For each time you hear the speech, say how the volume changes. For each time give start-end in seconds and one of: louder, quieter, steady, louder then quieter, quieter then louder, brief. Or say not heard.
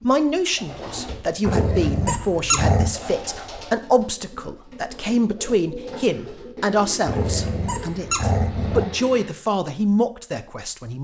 0.0-11.0 steady.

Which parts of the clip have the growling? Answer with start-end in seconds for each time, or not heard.
1.4-3.0, 7.0-8.9.